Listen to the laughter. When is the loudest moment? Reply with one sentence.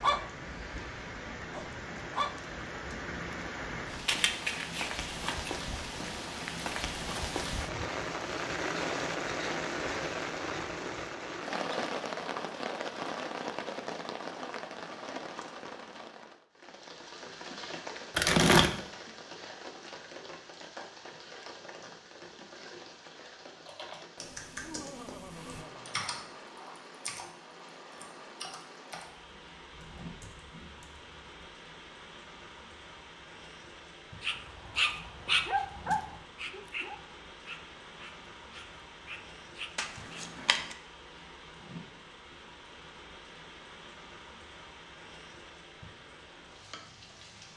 The loudest moment of the laughter is at 25 seconds.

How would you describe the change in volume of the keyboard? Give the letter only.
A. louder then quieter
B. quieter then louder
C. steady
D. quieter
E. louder
D.